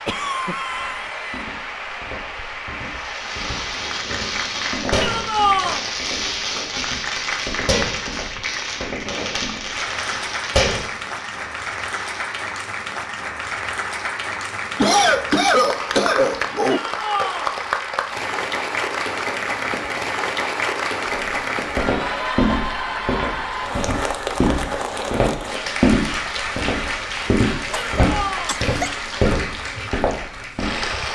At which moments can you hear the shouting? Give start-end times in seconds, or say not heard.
4.9-5.8, 16.6-17.6, 27.6-28.6.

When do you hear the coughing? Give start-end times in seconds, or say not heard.
0.1-1.4, 14.8-16.8, 27.2-28.9.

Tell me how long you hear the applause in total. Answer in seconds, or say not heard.
31 s.